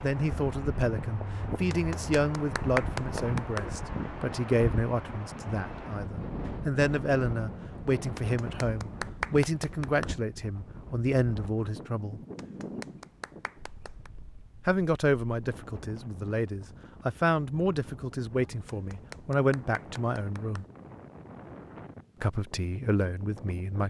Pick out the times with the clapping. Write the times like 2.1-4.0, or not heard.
1.7-3.7, 8.2-10.2, 12.3-14.1, 18.6-20.7.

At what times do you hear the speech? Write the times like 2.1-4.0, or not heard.
0.0-12.2, 14.7-20.6, 22.2-23.8.